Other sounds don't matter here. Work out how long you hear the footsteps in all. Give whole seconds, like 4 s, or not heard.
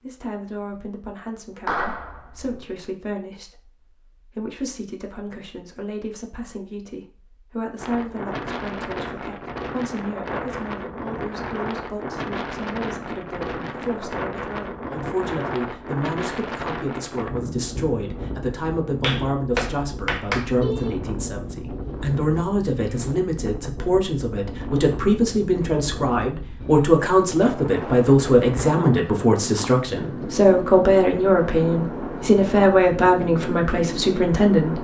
not heard.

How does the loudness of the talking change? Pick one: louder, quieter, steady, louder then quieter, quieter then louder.
louder.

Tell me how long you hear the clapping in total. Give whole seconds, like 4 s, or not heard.
3 s.